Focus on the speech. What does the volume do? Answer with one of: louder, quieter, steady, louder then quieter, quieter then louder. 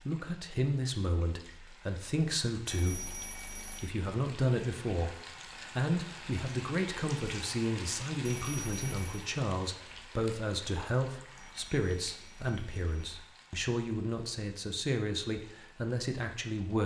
steady.